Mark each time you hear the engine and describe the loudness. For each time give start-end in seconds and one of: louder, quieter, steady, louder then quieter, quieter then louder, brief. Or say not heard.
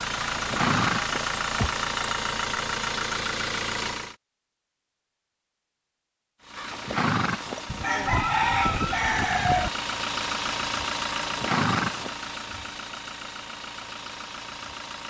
0.0-4.2 steady
6.4-15.0 louder then quieter.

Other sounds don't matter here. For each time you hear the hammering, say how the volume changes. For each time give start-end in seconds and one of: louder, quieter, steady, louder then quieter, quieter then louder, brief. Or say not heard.
not heard.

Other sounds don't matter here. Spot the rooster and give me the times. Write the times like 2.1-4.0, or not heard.
7.7-9.7.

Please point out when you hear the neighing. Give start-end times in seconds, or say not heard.
0.1-1.9, 6.5-7.7, 11.2-12.2.